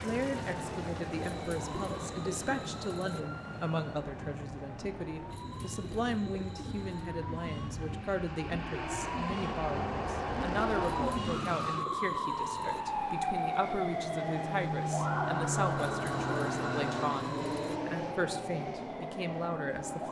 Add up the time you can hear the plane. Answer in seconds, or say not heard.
20 s.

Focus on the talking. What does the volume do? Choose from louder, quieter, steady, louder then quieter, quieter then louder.
steady.